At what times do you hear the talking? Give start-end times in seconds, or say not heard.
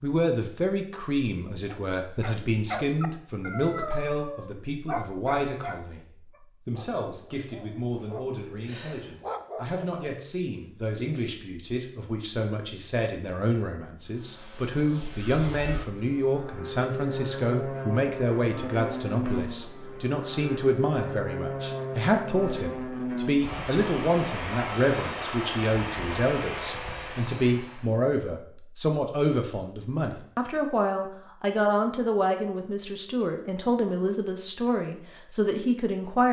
0.0-36.2.